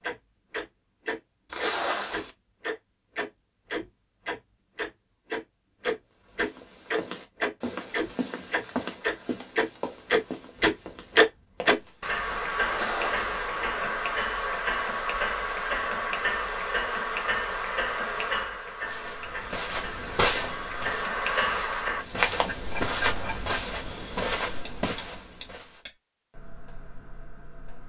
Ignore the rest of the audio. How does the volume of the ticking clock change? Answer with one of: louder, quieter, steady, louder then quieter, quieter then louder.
quieter.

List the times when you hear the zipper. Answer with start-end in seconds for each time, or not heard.
1.5-2.3, 12.7-13.5, 23.0-23.5.